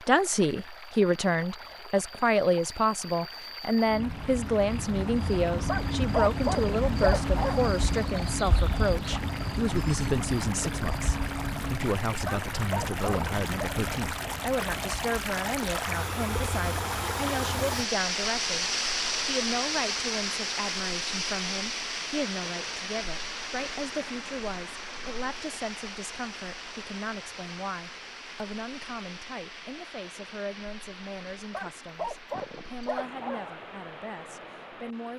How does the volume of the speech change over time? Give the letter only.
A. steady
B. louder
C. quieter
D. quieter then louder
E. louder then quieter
C.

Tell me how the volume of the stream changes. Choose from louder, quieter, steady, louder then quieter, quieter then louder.
louder then quieter.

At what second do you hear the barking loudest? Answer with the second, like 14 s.
6 s.